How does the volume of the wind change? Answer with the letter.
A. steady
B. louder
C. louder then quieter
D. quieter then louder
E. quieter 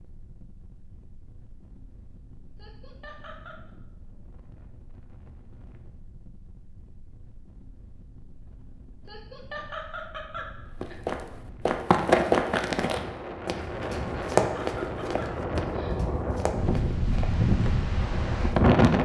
B.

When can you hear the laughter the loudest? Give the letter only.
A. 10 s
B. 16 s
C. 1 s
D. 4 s
A.